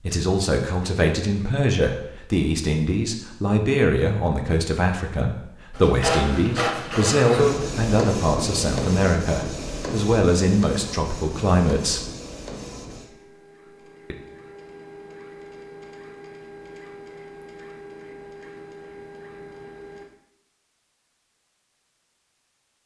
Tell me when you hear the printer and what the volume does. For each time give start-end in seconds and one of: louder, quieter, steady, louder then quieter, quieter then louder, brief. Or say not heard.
5.8-20.1 quieter.